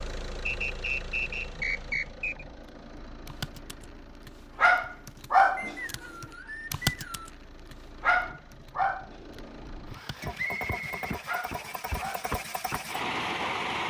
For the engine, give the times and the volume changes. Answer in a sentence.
The engine can be heard from 0.0 to 13.8 s, getting quieter then louder.